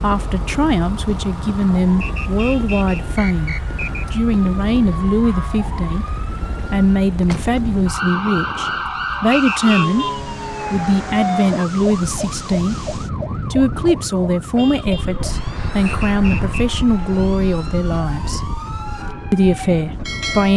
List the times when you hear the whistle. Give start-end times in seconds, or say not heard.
2.0-4.0, 9.3-9.8, 15.8-16.6.